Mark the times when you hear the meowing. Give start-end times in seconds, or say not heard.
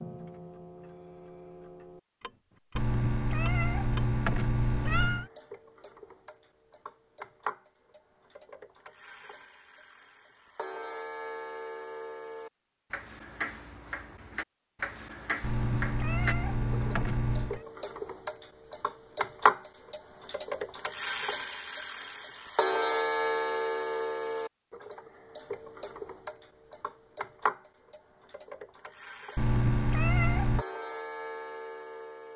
2.8-5.3, 15.4-17.6, 29.4-30.6.